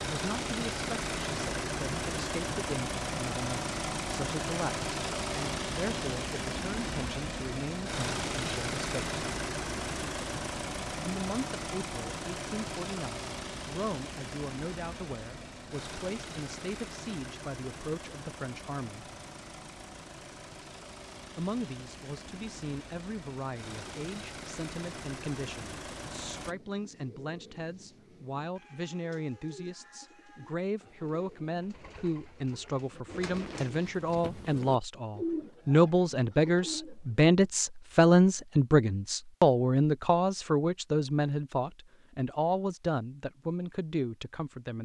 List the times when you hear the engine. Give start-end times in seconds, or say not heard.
0.0-26.6.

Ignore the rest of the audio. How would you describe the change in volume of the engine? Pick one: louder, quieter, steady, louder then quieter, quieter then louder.
quieter.